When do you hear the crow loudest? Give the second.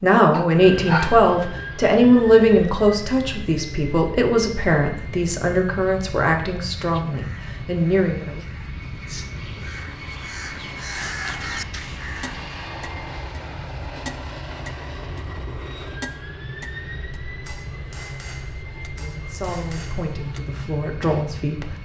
11 s.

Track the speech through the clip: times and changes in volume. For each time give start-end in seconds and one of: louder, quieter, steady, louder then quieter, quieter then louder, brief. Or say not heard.
0.0-8.4 quieter
18.9-21.8 brief.